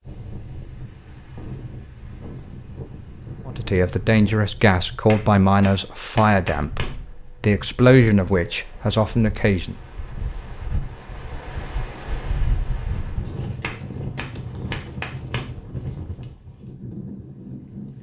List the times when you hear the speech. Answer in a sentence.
The speech can be heard from 3.5 to 9.8 s.